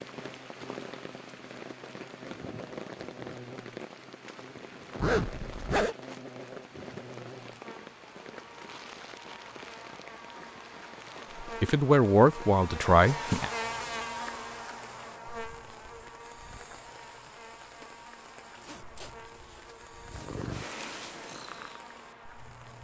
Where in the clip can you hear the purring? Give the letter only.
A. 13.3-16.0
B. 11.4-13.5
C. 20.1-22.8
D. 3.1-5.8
C.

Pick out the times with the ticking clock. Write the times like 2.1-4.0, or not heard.
not heard.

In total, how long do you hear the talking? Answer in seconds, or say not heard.
2 s.